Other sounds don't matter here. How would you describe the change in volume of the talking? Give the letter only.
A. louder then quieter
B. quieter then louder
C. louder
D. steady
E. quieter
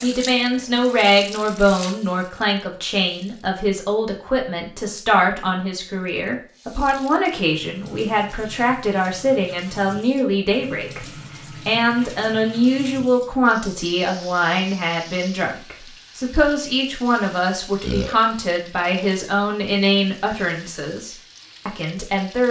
D.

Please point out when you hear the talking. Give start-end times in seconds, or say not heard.
0.0-11.1, 11.7-22.4.